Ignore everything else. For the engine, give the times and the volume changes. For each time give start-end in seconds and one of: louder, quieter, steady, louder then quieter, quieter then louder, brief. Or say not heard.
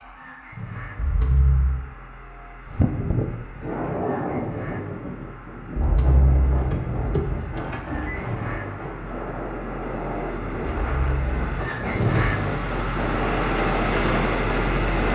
0.0-15.1 louder.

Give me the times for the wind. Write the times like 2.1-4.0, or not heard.
2.6-15.1.